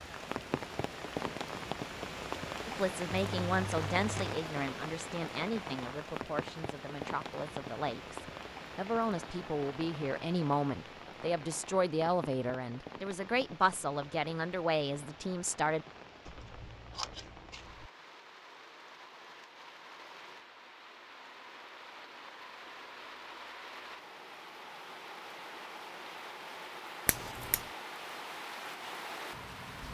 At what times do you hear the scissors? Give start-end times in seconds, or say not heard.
3.2-4.4, 16.2-17.9, 27.1-27.6.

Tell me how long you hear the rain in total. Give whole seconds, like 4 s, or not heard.
30 s.